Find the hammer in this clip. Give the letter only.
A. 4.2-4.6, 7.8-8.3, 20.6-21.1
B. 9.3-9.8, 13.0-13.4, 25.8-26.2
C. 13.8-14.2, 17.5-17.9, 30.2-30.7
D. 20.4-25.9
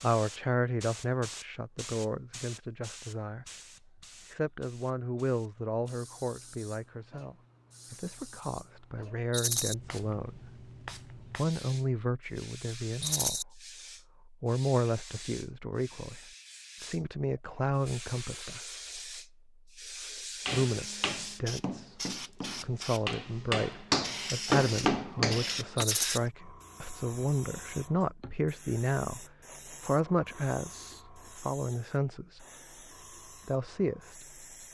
D.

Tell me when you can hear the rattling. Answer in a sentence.
You can hear the rattling from 9.3 to 9.8 s, from 13.0 to 13.4 s and from 25.8 to 26.2 s.